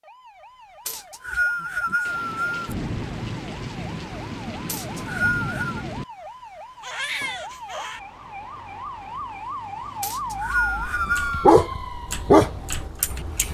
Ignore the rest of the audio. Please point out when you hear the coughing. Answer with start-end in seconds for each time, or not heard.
not heard.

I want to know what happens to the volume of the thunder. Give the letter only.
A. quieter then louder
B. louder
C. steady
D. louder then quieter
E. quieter
C.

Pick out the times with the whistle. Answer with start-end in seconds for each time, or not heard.
0.8-2.8, 4.7-5.8, 10.0-11.5.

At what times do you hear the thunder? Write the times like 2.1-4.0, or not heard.
2.0-6.0.